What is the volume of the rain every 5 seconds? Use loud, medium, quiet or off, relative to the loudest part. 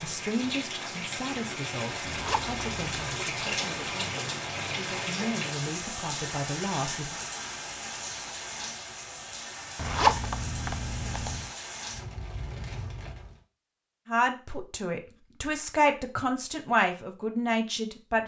loud, loud, medium, off.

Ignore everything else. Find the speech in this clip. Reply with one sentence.
You can hear the speech from 0.0 to 7.2 s and from 14.1 to 18.2 s.